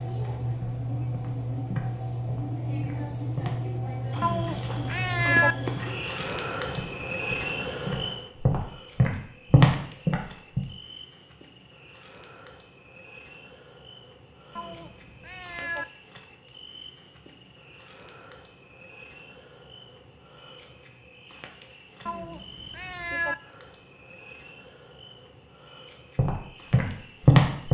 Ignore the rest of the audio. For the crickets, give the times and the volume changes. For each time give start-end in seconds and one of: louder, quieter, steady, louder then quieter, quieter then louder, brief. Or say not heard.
0.0-27.6 quieter.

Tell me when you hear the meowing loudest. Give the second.
5 s.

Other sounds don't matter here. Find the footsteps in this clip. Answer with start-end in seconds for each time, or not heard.
0.6-10.6, 26.1-27.6.